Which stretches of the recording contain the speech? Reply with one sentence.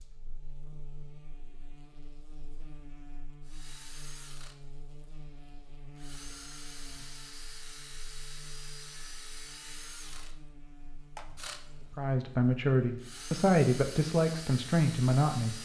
You can hear the speech from 11.9 to 15.6 s.